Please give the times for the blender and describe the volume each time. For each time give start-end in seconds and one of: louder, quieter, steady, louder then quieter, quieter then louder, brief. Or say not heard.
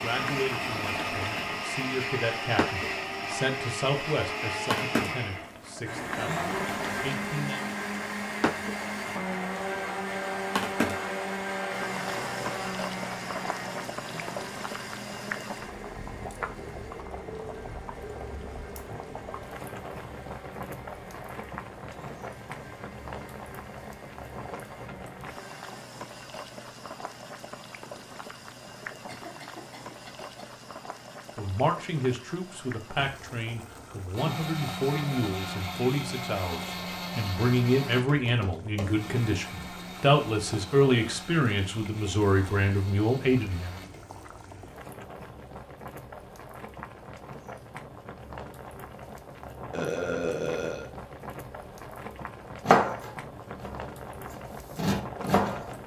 0.0-25.9 quieter
34.1-44.0 quieter.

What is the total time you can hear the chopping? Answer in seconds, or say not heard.
3 s.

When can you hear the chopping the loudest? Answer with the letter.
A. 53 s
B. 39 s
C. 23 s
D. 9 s
A.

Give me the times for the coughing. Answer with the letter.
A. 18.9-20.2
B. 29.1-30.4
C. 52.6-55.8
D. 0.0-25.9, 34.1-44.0
B.